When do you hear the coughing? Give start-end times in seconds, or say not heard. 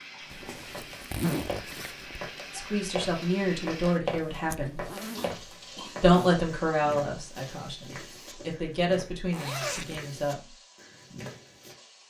5.2-6.0.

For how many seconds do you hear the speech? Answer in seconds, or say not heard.
7 s.